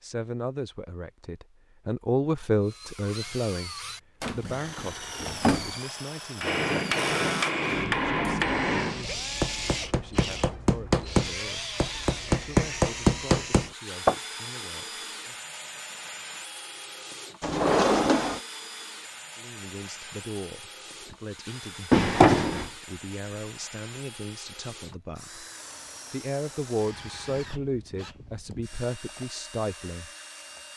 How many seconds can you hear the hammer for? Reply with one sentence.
You can hear the hammer for 8 seconds altogether.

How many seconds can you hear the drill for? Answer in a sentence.
You can hear the drill for 28 seconds altogether.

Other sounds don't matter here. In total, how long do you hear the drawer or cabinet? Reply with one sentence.
The drawer or cabinet can be heard for 3 seconds in total.